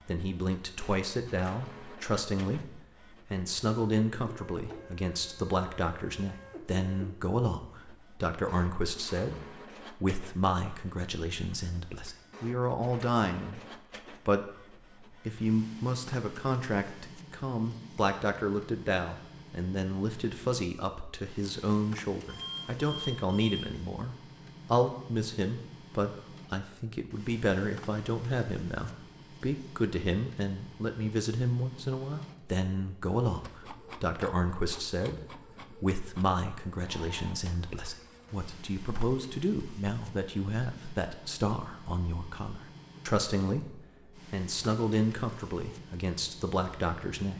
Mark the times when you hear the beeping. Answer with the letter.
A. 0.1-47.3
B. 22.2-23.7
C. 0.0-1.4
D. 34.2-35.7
B.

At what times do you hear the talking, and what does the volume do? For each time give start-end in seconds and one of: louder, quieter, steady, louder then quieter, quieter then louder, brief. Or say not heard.
0.1-47.3 steady.